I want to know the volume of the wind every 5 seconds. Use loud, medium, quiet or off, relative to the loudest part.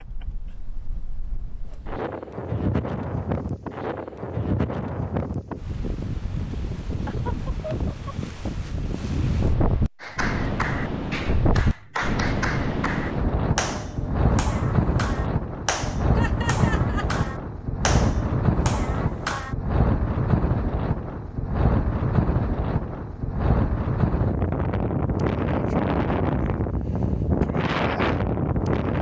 medium, medium, loud, loud, loud, loud.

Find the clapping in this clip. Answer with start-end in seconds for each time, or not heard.
10.0-19.6.